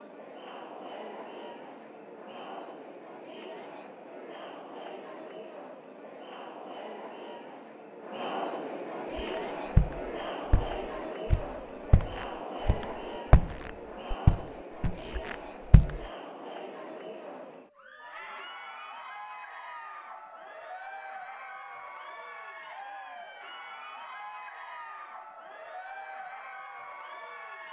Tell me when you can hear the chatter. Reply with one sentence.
You can hear the chatter from 0.0 to 27.6 s.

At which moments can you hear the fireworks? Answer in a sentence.
The fireworks can't be heard in this clip.